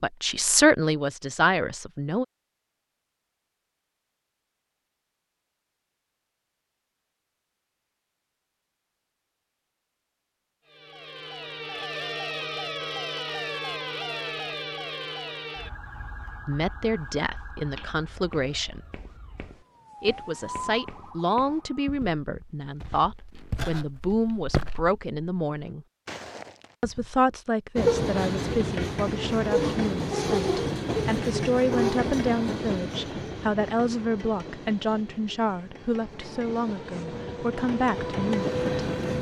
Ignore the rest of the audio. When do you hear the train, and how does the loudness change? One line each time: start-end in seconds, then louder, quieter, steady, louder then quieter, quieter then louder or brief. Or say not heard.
27.8-39.1 quieter then louder.